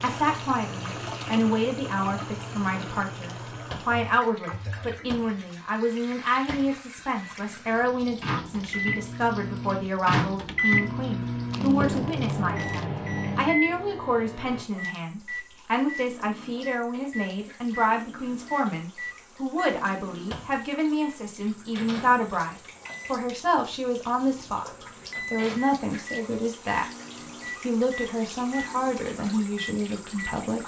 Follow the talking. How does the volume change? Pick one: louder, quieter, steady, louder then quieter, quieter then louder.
steady.